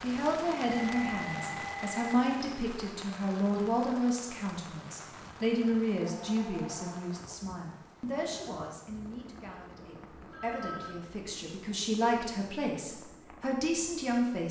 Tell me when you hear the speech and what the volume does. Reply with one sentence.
The speech can be heard from 0.0 to 14.4 s, getting quieter then louder.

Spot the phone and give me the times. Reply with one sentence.
You can hear the phone from 0.7 to 2.2 s, from 5.0 to 7.2 s and from 10.2 to 10.9 s.